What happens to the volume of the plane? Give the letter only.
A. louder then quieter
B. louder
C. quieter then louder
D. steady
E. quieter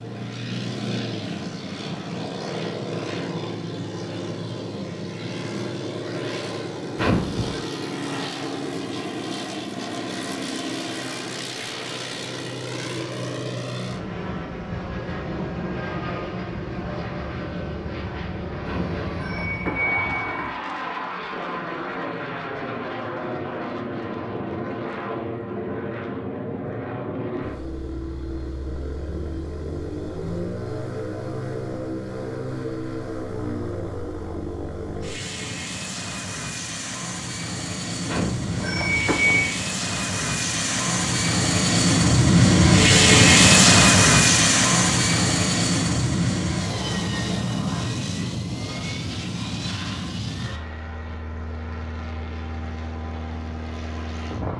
B.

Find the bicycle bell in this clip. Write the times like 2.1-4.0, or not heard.
7.0-7.6, 18.6-20.5, 38.0-39.5.